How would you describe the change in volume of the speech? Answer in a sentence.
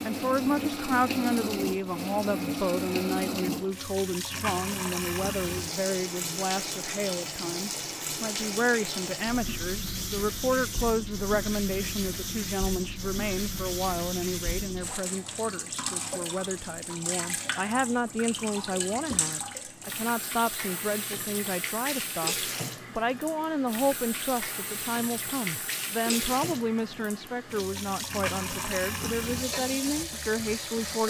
The volume of the speech stays about the same.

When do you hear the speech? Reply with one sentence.
The speech can be heard from 0.0 to 31.0 s.